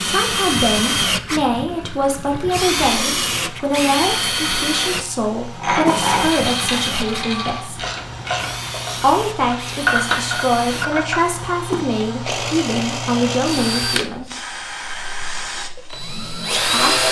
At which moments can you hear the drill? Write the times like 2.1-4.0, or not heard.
0.0-17.0.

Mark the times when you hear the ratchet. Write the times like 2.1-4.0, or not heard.
5.5-11.3.